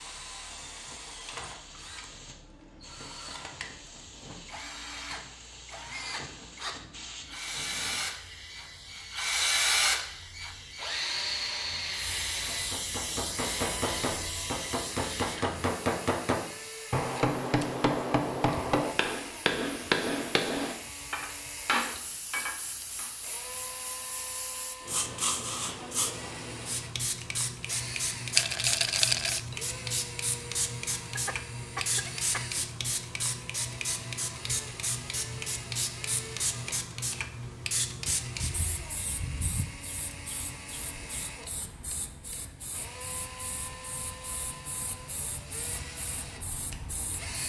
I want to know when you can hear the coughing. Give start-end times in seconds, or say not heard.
31.1-32.6.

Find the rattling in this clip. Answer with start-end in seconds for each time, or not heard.
28.4-29.4.